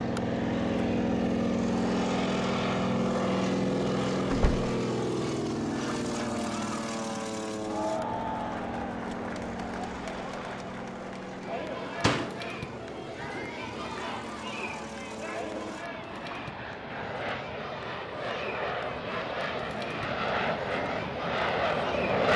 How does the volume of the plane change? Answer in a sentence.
The loudness of the plane goes down, then up.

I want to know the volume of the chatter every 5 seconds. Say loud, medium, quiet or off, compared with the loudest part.
off, loud, loud, loud, loud.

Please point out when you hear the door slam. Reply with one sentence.
The door slam can be heard from 4.3 to 4.7 s and from 12.0 to 12.4 s.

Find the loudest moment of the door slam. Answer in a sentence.
The loudest moment of the door slam is at 12 seconds.